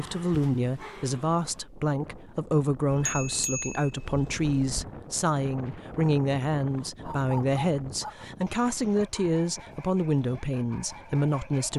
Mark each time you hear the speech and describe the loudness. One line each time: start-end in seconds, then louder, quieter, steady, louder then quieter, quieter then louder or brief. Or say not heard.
0.0-11.7 steady.